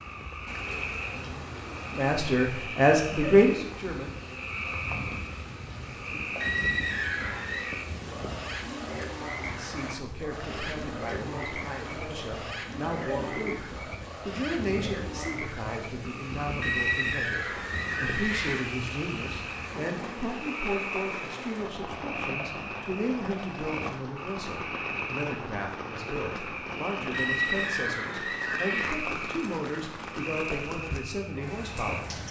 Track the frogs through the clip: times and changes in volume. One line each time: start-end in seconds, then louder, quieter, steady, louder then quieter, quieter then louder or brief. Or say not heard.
0.0-32.2 steady.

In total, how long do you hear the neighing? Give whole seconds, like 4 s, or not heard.
5 s.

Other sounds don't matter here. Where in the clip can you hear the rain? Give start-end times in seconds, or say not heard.
0.0-32.2.